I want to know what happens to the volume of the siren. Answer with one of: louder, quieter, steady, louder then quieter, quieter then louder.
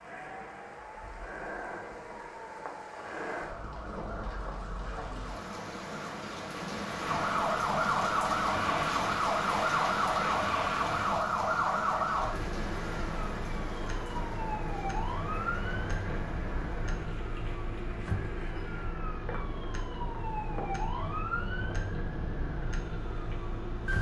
louder then quieter.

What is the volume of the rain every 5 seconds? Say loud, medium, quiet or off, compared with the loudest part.
medium, loud, loud, medium, medium.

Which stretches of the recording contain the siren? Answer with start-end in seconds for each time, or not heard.
0.0-23.9.